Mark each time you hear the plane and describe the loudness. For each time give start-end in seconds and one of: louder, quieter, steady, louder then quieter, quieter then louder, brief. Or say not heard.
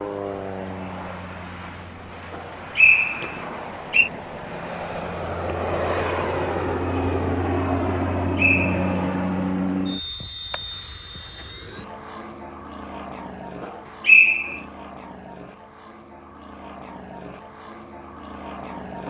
0.0-19.0 louder then quieter.